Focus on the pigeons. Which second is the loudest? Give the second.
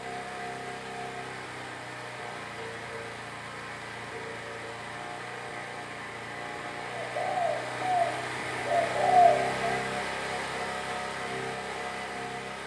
9 s.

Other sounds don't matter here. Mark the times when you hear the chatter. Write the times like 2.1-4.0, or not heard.
not heard.